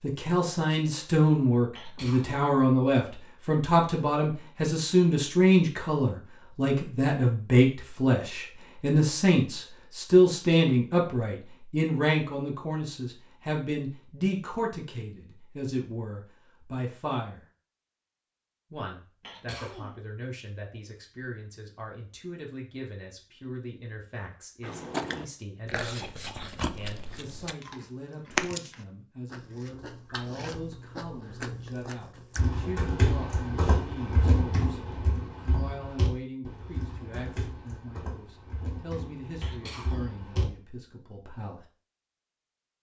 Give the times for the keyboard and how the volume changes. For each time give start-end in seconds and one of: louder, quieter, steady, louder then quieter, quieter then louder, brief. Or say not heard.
32.4-40.5 quieter.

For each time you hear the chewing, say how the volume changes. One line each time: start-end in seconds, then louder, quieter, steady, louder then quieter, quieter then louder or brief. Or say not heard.
24.6-32.4 louder then quieter.